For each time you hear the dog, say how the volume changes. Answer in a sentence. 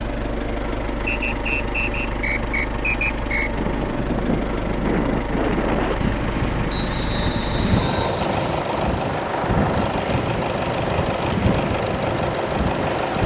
The dog can't be heard in this clip.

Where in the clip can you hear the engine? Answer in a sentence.
You can hear the engine from 0.0 to 13.2 s.